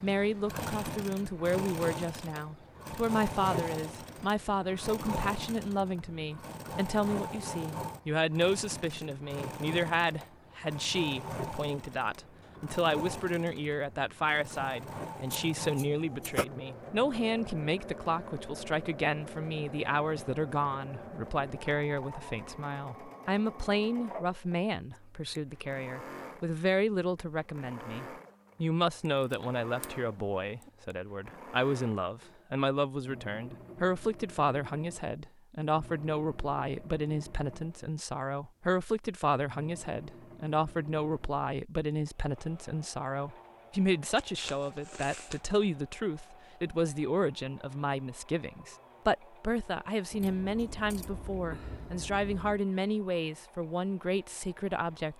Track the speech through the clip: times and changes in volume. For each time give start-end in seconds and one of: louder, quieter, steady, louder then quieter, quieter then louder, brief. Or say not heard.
0.0-55.1 steady.